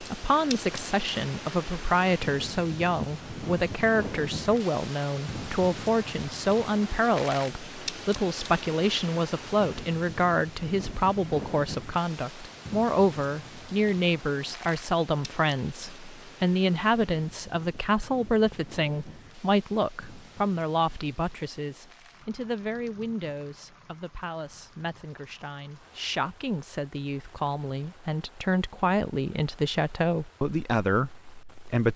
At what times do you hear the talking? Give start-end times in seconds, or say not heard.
0.0-31.9.